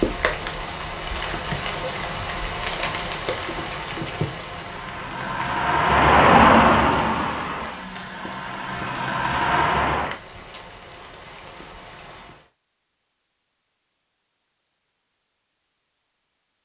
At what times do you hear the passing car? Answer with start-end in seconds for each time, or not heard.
4.5-10.2.